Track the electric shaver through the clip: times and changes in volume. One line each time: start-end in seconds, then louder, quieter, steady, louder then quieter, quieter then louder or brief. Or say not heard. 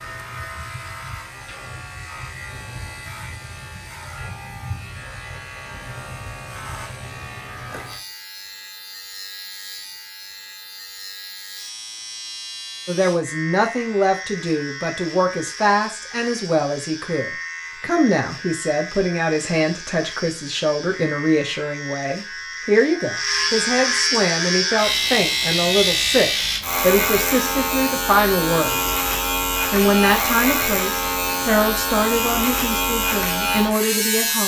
0.0-34.4 louder.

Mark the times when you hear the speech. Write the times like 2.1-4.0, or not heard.
12.8-28.9, 29.7-34.4.